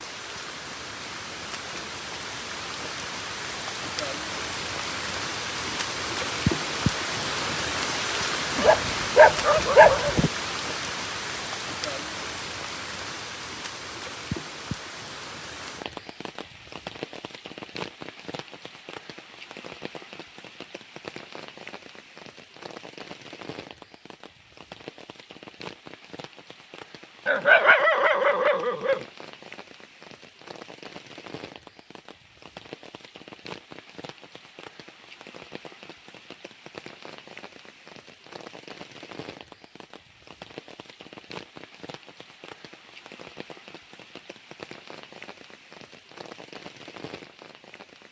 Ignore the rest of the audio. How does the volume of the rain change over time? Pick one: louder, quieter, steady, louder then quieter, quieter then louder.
quieter.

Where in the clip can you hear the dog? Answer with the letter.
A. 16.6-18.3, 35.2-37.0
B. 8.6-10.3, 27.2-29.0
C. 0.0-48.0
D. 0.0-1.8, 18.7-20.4
B.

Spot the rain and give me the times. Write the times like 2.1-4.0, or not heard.
0.0-48.0.